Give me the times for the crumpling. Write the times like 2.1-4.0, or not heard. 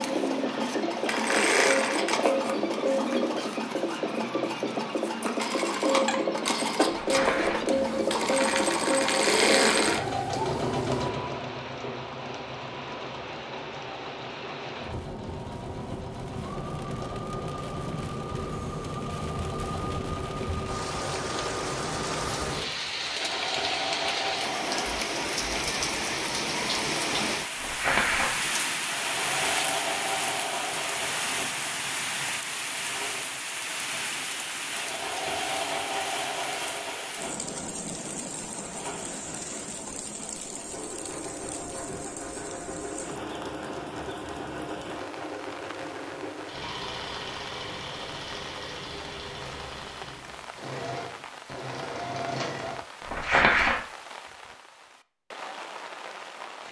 7.0-7.8, 27.6-28.5, 53.0-53.8.